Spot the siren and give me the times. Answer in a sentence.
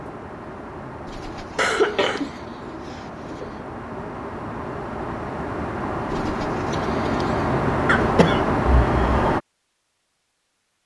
You can't hear the siren here.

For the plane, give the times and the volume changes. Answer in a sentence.
You can hear the plane from 0.0 to 9.4 s, getting louder.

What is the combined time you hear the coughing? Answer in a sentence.
You can hear the coughing for 2 seconds altogether.